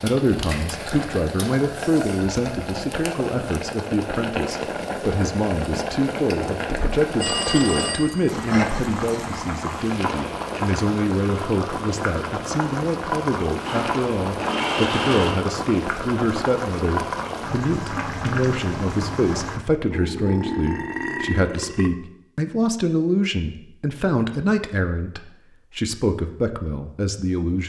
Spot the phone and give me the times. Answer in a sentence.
The phone can be heard from 7.2 to 8.8 s.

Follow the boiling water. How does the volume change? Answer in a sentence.
The loudness of the boiling water stays about the same.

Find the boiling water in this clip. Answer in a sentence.
You can hear the boiling water from 0.0 to 19.6 s.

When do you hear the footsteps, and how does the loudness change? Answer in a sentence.
The footsteps can't be heard in this clip.